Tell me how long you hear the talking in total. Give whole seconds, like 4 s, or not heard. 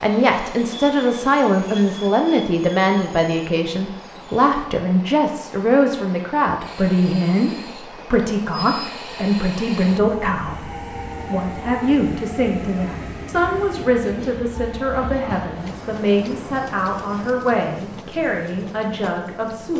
20 s.